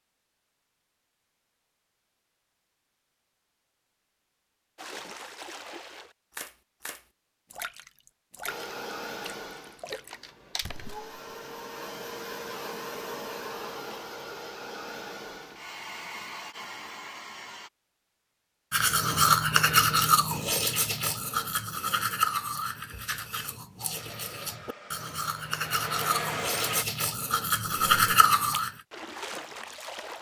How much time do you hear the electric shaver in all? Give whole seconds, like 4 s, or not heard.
not heard.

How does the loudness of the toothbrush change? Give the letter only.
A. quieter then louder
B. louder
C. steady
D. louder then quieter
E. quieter
A.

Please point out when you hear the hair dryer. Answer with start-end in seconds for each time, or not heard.
8.4-17.7, 23.9-26.9.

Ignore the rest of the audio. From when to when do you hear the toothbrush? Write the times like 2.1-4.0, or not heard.
18.7-28.7.